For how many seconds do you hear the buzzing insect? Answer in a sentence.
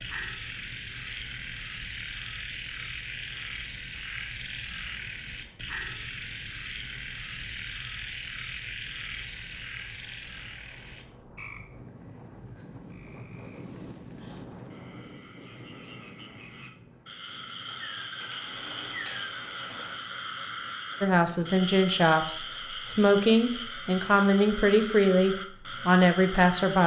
The buzzing insect can't be heard in this clip.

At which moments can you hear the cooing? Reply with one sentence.
The cooing can be heard from 17.6 to 19.9 s.